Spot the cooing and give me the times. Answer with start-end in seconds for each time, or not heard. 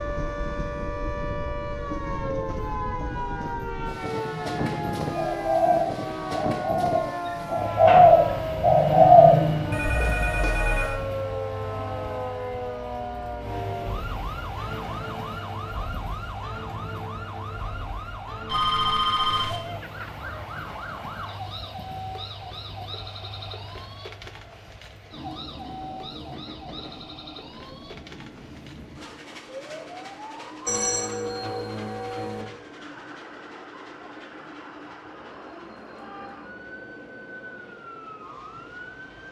4.2-9.8.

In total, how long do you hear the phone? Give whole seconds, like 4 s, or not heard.
4 s.